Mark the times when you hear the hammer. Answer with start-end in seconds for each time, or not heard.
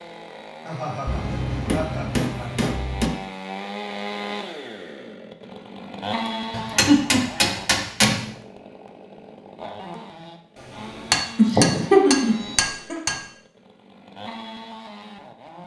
1.1-3.1, 6.5-8.3, 10.8-13.2.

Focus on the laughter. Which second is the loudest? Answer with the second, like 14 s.
12 s.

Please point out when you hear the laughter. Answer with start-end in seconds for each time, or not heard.
0.6-2.7, 6.2-7.4, 11.3-12.9.